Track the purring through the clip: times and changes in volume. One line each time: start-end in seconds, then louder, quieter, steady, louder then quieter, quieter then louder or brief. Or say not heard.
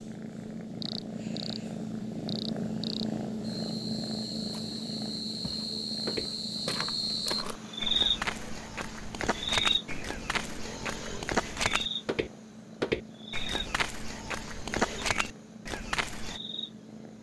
0.0-17.1 quieter.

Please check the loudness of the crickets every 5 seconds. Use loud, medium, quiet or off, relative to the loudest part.
medium, loud, medium, quiet.